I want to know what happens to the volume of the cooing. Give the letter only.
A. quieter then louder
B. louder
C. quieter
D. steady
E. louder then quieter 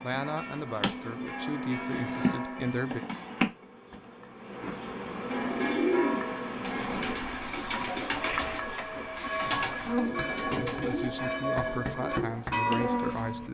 C.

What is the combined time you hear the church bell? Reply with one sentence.
The church bell can be heard for 11 seconds in total.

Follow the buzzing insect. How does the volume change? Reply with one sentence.
The volume of the buzzing insect stays about the same.